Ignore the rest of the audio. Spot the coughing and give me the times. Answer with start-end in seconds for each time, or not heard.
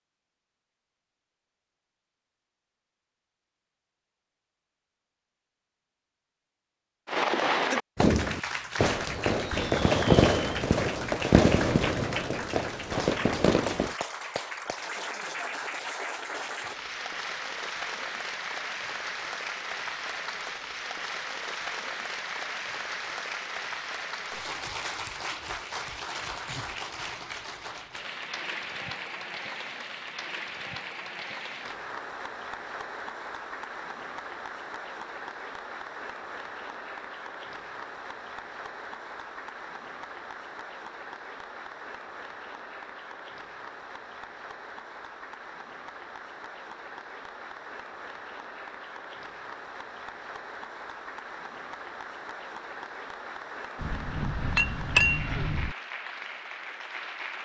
not heard.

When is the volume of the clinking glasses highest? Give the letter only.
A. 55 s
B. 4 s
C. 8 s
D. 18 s
A.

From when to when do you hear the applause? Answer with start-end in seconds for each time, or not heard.
8.0-57.3.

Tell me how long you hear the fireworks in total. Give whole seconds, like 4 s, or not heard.
7 s.